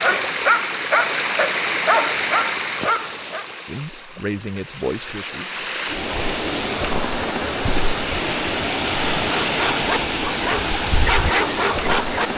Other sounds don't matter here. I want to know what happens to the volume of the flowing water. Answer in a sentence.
The loudness of the flowing water goes down, then up.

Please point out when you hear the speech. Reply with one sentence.
The speech can be heard from 3.6 to 5.7 s.